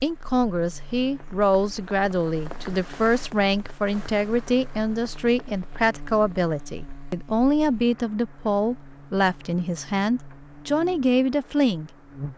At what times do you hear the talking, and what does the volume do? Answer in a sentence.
The talking can be heard from 0.0 to 11.9 s, at a steady volume.